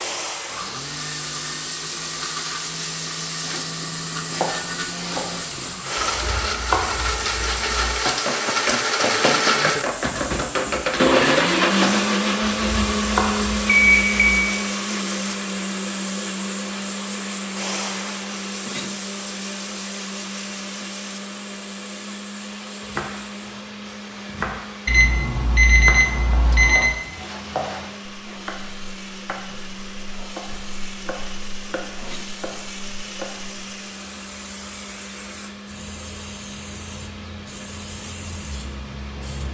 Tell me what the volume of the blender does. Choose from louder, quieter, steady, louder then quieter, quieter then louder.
louder then quieter.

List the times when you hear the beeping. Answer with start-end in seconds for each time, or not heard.
13.7-14.4, 24.9-26.9.